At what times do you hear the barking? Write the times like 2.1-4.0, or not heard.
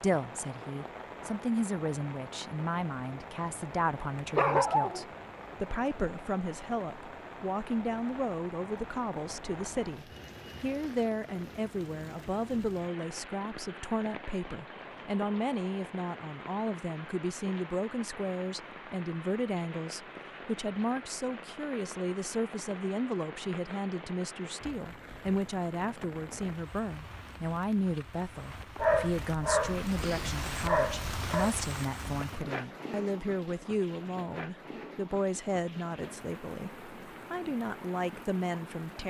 4.3-5.0, 28.8-31.5.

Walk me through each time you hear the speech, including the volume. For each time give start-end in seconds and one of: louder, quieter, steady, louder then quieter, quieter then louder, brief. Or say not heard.
0.0-39.0 steady.